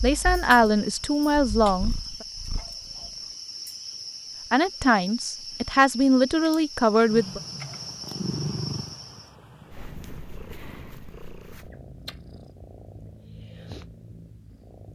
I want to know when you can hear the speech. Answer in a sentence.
The speech can be heard from 0.0 to 2.2 s and from 4.5 to 7.4 s.